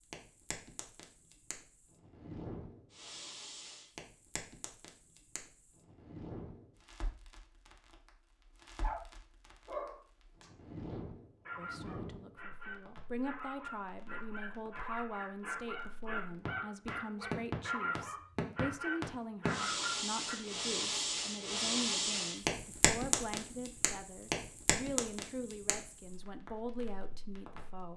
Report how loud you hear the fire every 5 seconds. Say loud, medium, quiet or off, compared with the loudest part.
quiet, quiet, quiet, loud, loud, quiet.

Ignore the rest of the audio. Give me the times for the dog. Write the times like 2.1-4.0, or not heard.
8.8-20.4.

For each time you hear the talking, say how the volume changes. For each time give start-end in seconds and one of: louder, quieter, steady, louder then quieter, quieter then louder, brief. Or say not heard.
11.6-27.9 steady.